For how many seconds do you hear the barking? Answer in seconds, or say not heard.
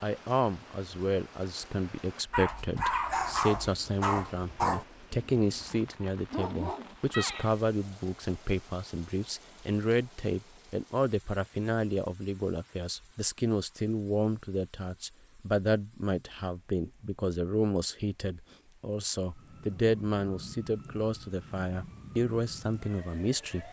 6 s.